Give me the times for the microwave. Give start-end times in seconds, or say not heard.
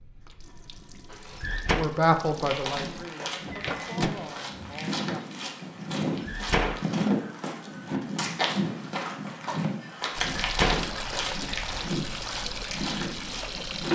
3.5-4.8.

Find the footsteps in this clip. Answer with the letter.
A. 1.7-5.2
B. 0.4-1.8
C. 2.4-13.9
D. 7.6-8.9
C.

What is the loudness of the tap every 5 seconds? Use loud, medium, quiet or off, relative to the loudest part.
quiet, off, loud.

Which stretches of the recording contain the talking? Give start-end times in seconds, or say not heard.
1.7-5.2.